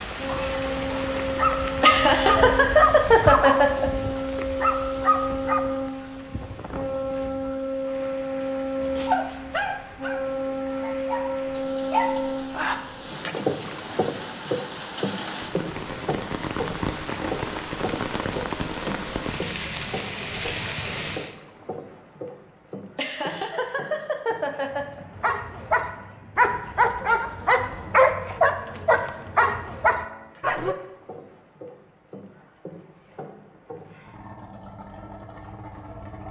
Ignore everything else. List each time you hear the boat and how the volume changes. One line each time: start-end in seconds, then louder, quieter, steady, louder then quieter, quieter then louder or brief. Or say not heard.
0.1-36.2 quieter.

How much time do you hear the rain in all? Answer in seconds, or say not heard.
21 s.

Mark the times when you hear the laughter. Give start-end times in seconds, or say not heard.
1.8-3.9, 22.9-25.0.